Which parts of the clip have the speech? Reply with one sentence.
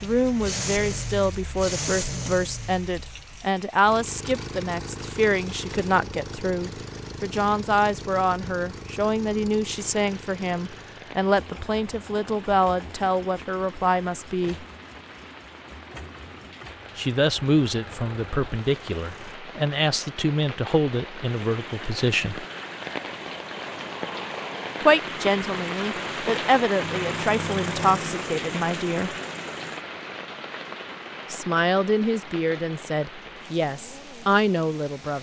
You can hear the speech from 0.0 to 14.7 s, from 16.9 to 22.4 s, from 24.8 to 29.1 s and from 31.3 to 35.1 s.